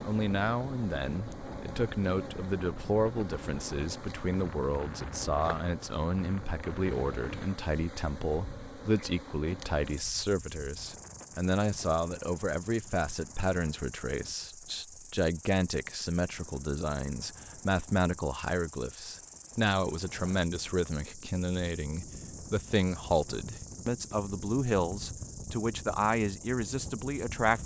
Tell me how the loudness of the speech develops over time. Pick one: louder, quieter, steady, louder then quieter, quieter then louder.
steady.